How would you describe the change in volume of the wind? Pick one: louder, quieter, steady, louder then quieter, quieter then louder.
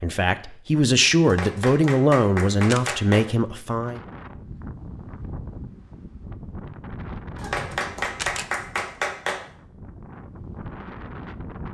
quieter then louder.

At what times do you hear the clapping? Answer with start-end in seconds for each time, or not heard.
1.2-3.2, 7.3-9.4.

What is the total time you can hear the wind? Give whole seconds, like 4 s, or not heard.
8 s.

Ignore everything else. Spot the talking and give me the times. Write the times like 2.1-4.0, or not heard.
0.0-4.0.